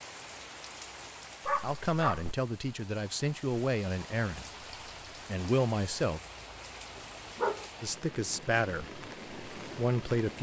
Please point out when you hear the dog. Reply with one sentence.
You can hear the dog from 1.4 to 2.4 s and from 7.0 to 7.7 s.